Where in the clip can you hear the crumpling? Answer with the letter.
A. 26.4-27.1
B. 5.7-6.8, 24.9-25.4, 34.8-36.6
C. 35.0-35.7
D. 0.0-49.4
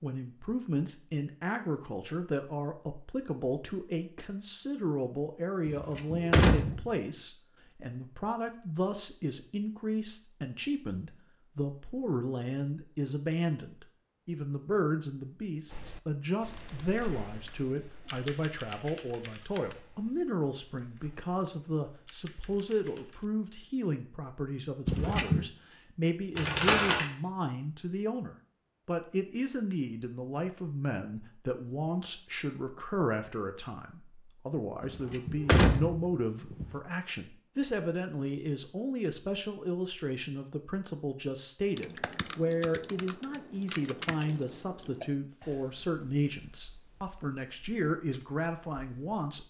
A.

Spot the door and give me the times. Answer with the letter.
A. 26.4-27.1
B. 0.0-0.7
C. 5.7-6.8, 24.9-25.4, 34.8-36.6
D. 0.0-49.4
C.